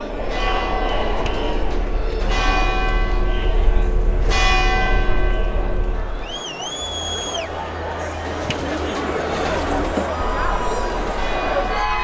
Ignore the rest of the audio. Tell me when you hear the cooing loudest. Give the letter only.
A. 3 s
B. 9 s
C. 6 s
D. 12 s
B.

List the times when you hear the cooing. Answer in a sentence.
The cooing can be heard from 1.1 to 3.2 s and from 8.2 to 10.0 s.